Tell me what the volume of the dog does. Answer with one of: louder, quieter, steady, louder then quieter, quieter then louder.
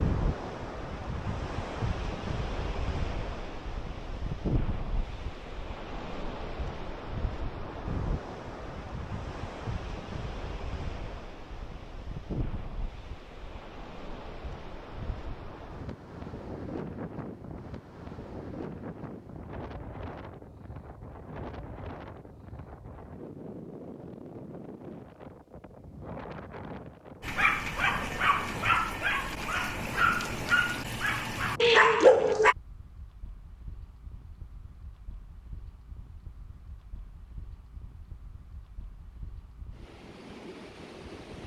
louder.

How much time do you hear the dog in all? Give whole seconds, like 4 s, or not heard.
5 s.